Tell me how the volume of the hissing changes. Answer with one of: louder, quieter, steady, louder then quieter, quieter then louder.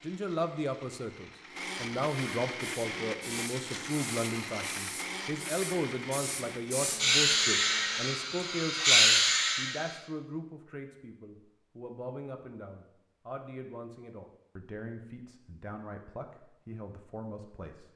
louder.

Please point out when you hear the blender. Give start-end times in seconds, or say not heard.
0.0-8.1.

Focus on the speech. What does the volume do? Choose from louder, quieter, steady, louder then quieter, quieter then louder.
quieter.